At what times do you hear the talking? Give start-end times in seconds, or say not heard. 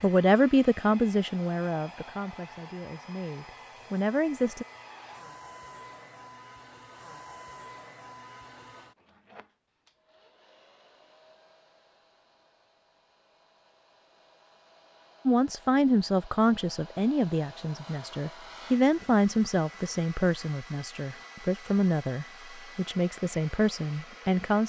0.0-4.7, 15.2-24.6.